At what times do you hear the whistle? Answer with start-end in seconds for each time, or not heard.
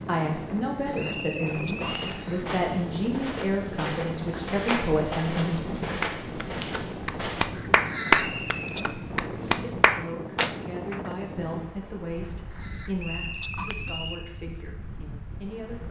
0.9-2.2, 8.2-8.8, 12.9-14.2.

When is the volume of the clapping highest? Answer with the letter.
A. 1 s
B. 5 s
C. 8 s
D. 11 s
C.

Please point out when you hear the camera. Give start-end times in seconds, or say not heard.
0.6-2.5, 7.5-8.8, 12.2-13.8.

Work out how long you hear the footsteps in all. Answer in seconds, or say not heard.
6 s.